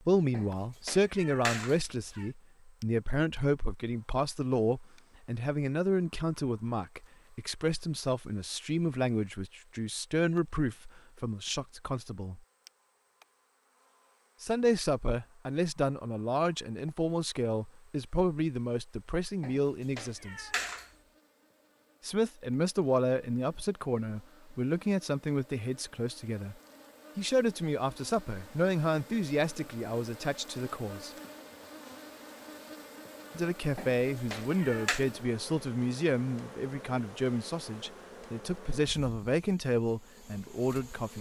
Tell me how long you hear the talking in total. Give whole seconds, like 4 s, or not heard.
35 s.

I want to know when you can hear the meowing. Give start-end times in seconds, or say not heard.
0.3-2.3, 19.4-20.9, 33.8-35.0.